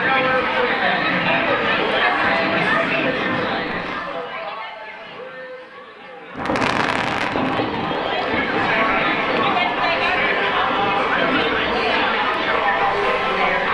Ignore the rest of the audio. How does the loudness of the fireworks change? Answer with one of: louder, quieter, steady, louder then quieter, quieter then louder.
louder then quieter.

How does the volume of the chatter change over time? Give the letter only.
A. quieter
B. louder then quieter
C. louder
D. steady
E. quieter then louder
E.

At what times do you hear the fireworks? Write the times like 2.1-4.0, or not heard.
0.0-4.0, 6.3-13.4.